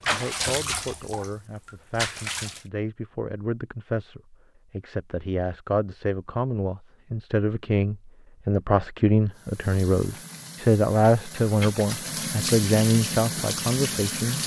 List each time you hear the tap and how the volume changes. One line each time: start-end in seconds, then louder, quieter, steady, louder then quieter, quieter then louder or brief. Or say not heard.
0.0-2.6 brief
9.3-14.4 louder.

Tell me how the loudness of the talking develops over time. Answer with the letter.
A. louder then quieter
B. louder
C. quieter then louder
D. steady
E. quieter
B.